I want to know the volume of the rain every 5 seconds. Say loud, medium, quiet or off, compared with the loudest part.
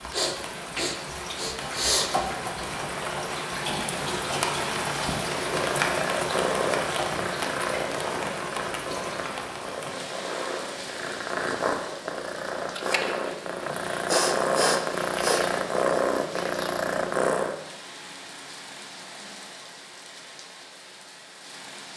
loud, loud, medium, quiet, quiet.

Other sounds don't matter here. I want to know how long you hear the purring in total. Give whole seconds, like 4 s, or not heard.
12 s.